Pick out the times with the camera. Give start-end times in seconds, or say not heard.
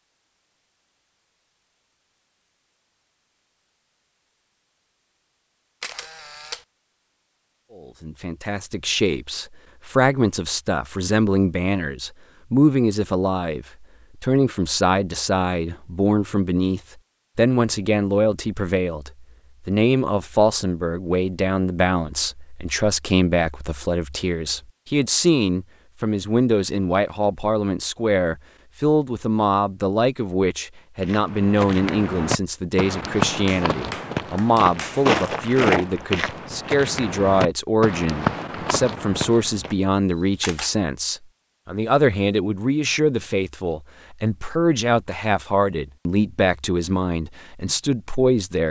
5.8-6.7, 40.1-40.8.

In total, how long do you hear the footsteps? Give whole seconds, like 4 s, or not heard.
9 s.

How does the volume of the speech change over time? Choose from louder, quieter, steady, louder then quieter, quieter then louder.
steady.